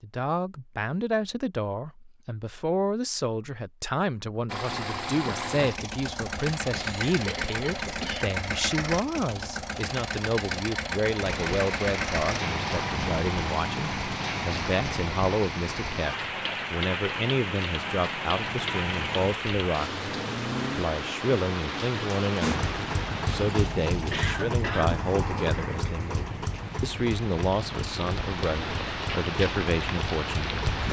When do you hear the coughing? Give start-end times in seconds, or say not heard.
6.7-8.2, 24.1-25.0.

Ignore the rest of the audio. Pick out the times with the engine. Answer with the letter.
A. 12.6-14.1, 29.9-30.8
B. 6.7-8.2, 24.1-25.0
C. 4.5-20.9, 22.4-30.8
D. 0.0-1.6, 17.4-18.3
C.